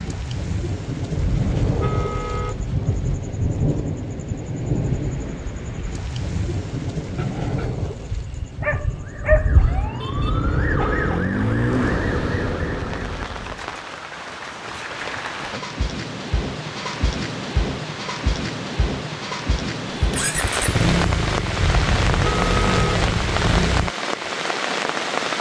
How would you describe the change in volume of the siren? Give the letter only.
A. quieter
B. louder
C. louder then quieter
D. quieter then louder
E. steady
C.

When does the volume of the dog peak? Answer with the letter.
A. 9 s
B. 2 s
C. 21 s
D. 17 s
A.